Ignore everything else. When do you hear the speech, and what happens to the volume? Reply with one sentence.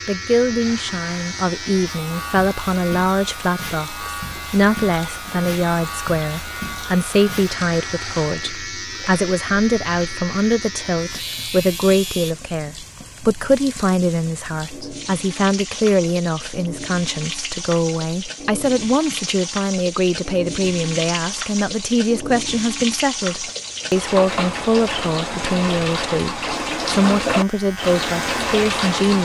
You can hear the speech from 0.1 to 29.2 s, at a steady volume.